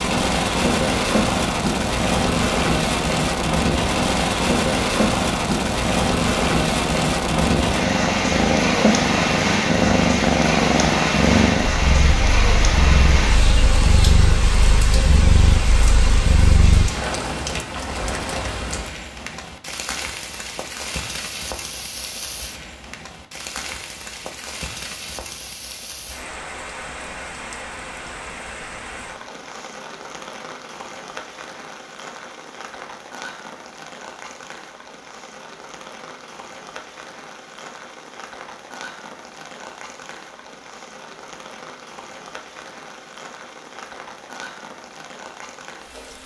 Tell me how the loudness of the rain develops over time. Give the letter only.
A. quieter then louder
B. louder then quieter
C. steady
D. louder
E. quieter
E.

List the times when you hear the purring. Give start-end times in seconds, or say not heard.
0.0-16.9.